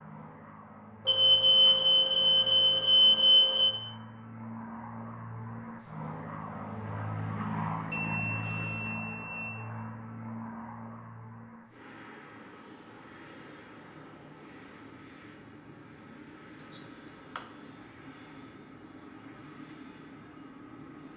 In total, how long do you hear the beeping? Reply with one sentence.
You can hear the beeping for 5 seconds altogether.